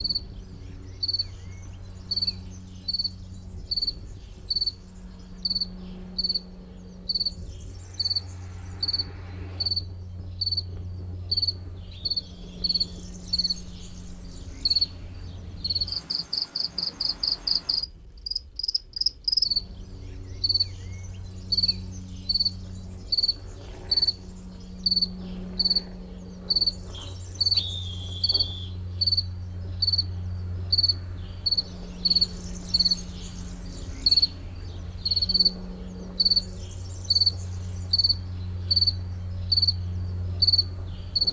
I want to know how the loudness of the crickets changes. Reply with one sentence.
The loudness of the crickets goes up.